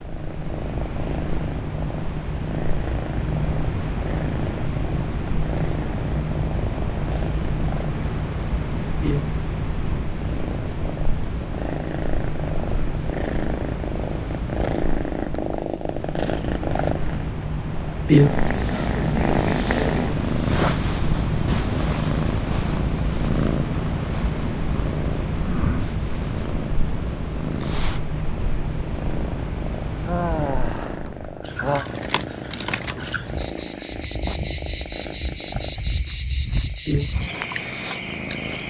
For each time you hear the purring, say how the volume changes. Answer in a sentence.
The purring can be heard from 0.0 to 38.6 s, getting louder then quieter.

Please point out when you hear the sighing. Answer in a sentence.
You can hear the sighing from 30.0 to 31.9 s.